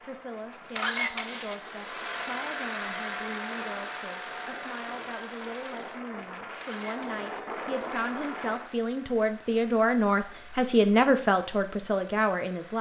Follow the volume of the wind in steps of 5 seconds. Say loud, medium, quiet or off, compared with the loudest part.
medium, loud, off.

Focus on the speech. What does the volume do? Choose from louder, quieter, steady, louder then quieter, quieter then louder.
louder.